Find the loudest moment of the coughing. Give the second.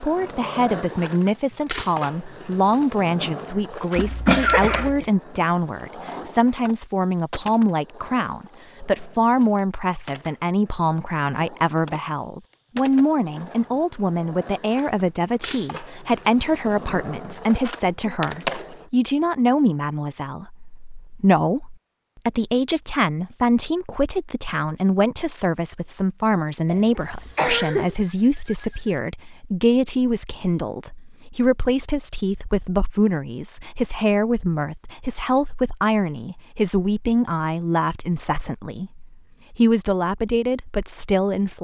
4 s.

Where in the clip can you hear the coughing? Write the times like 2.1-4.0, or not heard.
4.0-5.0, 26.6-27.9.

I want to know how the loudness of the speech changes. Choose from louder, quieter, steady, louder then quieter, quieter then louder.
steady.